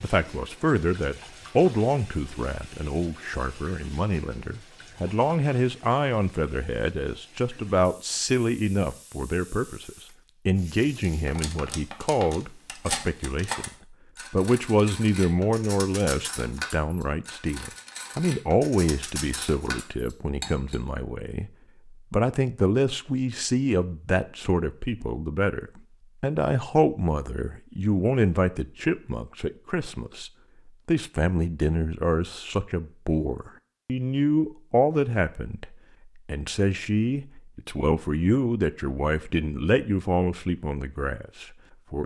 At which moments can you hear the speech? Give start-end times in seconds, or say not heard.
0.0-13.7, 14.3-42.0.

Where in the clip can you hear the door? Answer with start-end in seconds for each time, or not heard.
not heard.